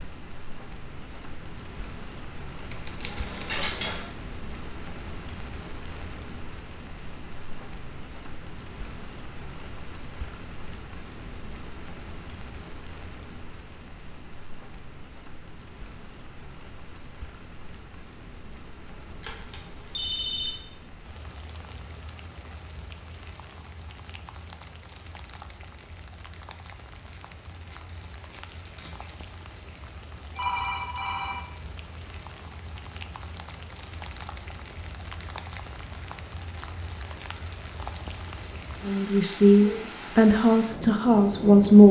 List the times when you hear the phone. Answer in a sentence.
You can hear the phone from 3.0 to 4.1 s, from 18.9 to 20.6 s and from 30.4 to 31.4 s.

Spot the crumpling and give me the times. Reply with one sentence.
You can hear the crumpling from 2.7 to 4.0 s and from 26.9 to 29.2 s.